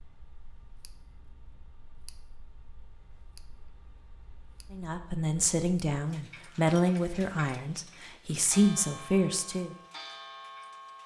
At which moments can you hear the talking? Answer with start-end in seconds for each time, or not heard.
4.7-9.8.